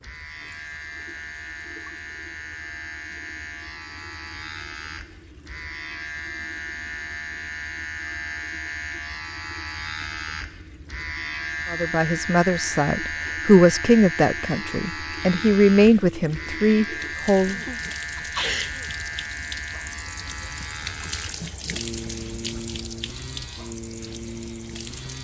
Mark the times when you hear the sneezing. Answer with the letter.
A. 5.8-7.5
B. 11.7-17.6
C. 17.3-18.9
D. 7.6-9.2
C.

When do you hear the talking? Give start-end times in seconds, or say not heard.
11.7-17.6.